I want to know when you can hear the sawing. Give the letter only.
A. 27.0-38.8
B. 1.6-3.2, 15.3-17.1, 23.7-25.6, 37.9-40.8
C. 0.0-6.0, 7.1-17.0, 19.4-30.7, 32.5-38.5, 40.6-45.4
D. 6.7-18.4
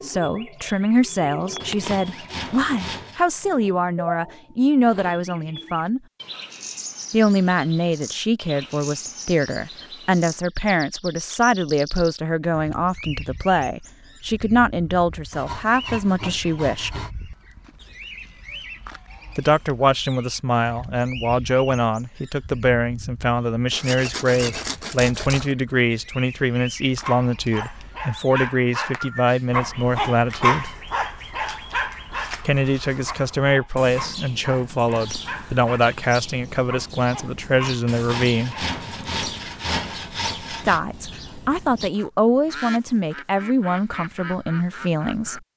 B.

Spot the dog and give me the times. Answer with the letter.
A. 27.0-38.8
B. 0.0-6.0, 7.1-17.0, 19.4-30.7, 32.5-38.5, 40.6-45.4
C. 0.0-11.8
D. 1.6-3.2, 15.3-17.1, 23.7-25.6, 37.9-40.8
A.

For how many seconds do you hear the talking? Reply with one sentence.
The talking can be heard for 38 seconds in total.